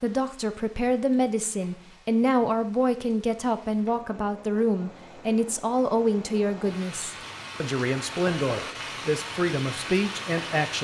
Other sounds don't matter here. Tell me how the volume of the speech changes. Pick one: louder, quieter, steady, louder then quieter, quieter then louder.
steady.